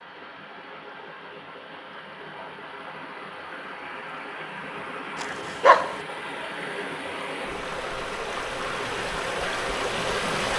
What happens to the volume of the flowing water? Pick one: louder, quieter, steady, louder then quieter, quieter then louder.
louder.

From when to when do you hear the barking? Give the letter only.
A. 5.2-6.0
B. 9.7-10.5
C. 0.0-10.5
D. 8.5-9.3
A.